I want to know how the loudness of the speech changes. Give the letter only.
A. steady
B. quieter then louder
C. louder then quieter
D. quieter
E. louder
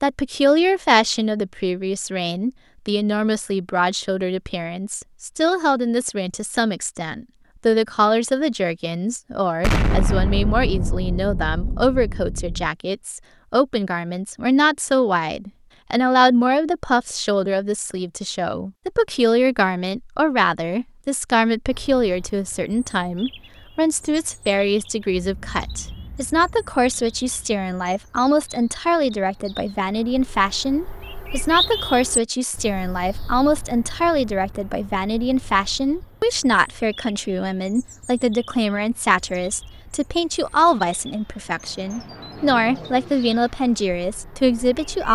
A.